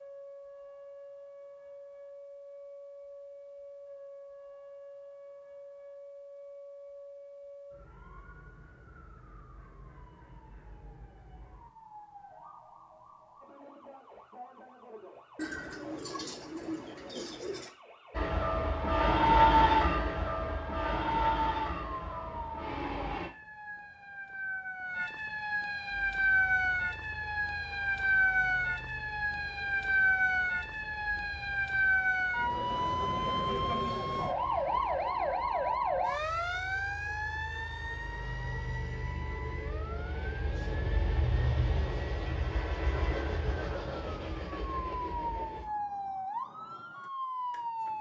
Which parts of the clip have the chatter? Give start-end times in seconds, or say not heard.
not heard.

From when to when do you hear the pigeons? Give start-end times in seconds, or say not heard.
15.3-17.7.